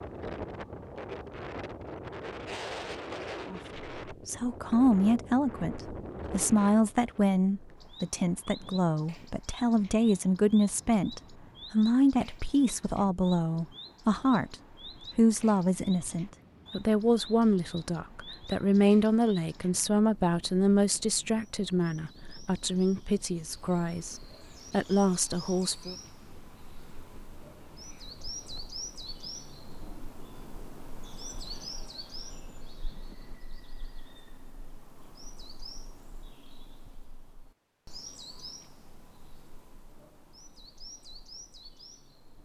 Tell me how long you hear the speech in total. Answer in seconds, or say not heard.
22 s.